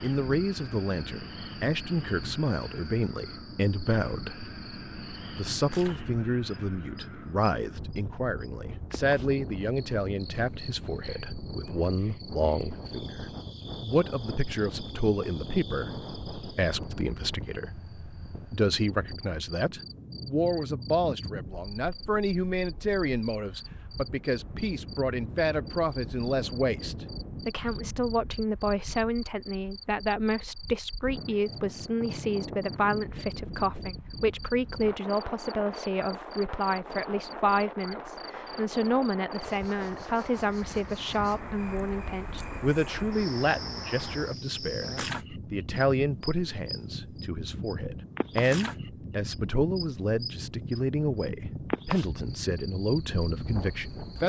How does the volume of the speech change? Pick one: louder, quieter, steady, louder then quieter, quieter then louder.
steady.